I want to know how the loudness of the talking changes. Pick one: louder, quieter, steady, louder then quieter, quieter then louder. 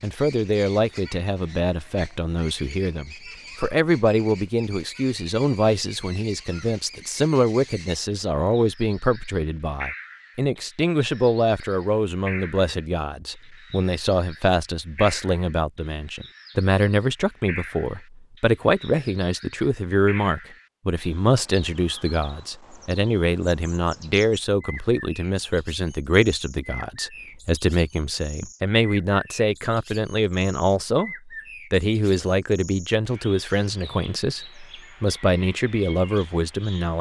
steady.